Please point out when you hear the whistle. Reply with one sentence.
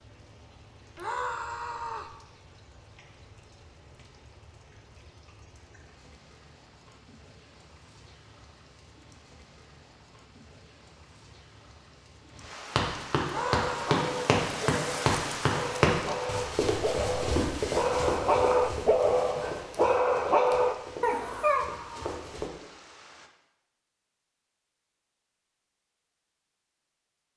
The whistle can't be heard in this clip.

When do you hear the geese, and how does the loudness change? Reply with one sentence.
You can't hear the geese here.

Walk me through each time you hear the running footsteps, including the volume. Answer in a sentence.
You can hear the running footsteps from 12.8 to 22.5 s, getting quieter.